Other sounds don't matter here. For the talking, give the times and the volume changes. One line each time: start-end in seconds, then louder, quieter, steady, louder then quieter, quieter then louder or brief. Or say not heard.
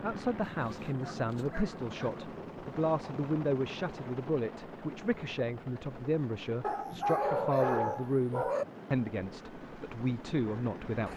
0.0-11.1 steady.